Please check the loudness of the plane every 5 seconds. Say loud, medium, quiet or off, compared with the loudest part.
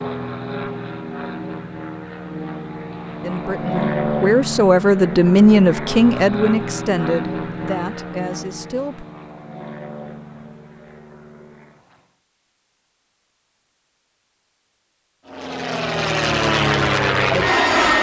medium, medium, quiet, loud.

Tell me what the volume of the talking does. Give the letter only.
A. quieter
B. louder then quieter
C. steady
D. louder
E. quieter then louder
B.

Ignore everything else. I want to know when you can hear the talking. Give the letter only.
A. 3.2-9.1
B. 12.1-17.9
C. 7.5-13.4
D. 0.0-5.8
A.